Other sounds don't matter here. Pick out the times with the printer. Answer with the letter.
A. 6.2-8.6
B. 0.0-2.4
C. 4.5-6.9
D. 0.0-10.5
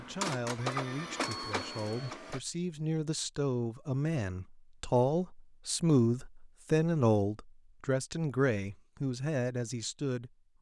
B.